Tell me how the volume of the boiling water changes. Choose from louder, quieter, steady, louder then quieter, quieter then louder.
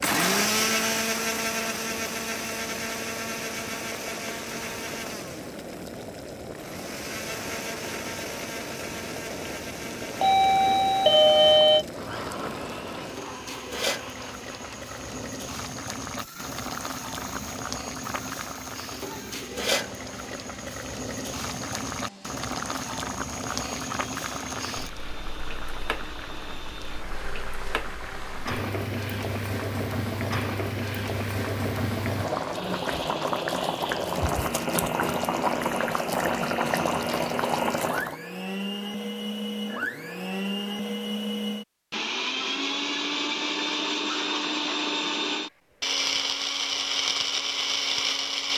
louder.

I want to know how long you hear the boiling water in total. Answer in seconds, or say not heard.
38 s.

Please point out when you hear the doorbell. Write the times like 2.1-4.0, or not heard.
10.2-11.8.